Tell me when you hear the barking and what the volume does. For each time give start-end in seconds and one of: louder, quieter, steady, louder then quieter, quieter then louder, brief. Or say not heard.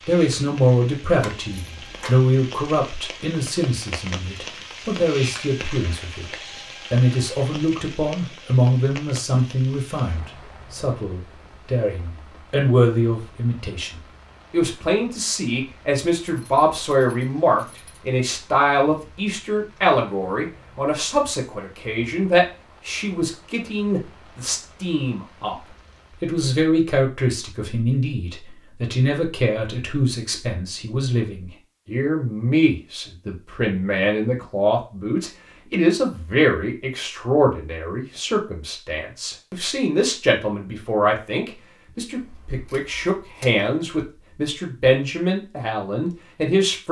not heard.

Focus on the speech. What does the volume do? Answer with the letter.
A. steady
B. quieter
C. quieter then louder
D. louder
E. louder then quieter
A.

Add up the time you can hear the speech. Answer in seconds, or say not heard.
47 s.